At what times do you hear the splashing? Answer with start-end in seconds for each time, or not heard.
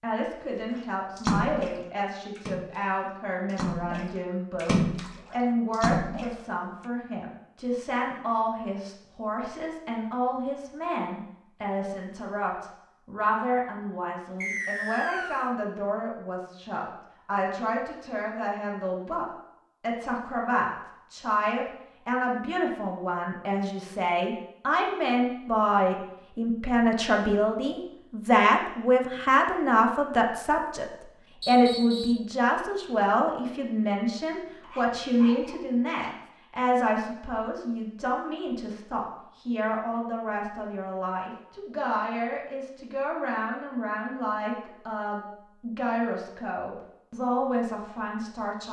1.1-6.4.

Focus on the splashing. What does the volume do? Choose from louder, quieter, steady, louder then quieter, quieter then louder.
louder.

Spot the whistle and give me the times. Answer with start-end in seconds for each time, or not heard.
14.4-15.5, 31.4-32.2.